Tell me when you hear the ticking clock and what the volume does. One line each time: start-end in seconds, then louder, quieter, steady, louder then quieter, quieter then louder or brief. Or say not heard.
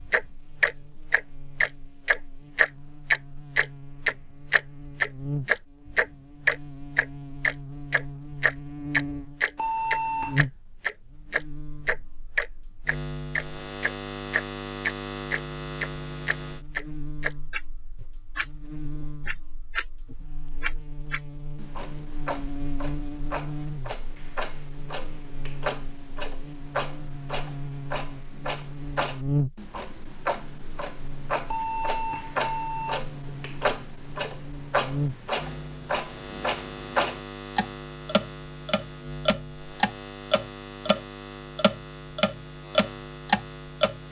0.1-44.0 quieter then louder.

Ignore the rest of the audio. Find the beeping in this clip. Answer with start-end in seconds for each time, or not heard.
9.6-10.4, 31.4-33.0.